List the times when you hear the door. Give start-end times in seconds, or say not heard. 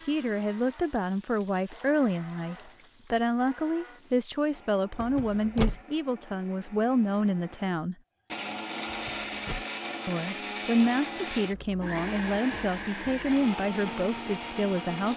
5.0-5.8, 8.8-9.7.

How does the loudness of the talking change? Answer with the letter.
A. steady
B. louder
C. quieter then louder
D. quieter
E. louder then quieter
A.